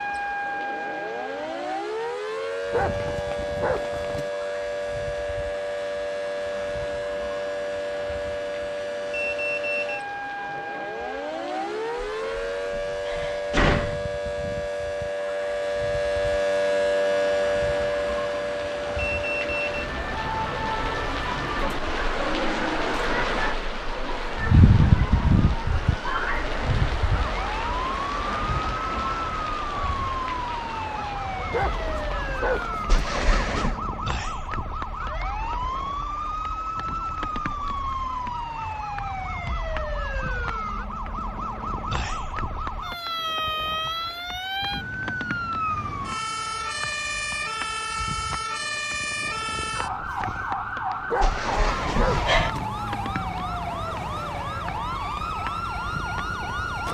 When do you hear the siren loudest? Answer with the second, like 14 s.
17 s.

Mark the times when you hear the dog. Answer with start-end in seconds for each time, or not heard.
2.7-4.3, 31.5-33.1, 51.1-52.7.